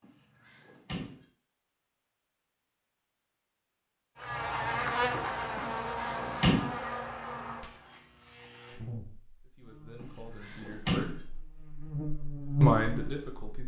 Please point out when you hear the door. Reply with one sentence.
You can hear the door from 0.0 to 1.2 s, from 5.5 to 6.8 s and from 10.0 to 11.2 s.